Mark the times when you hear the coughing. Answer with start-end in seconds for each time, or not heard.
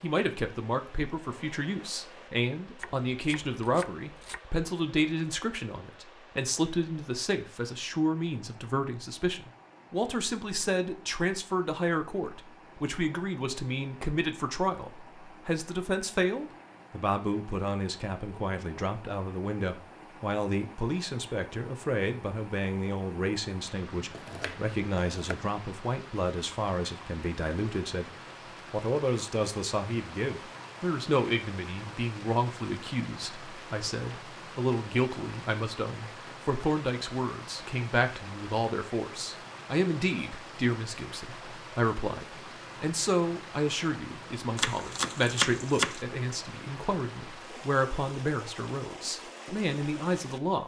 not heard.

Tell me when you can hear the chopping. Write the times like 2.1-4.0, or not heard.
2.8-4.4, 23.9-25.4, 44.5-46.0.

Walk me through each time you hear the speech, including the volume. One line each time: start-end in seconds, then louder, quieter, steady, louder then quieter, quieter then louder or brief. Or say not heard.
0.0-28.1 steady
28.7-50.6 steady.